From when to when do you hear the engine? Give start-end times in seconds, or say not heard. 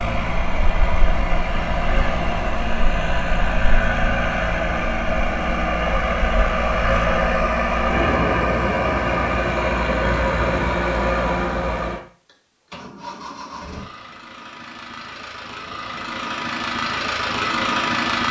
0.0-18.2.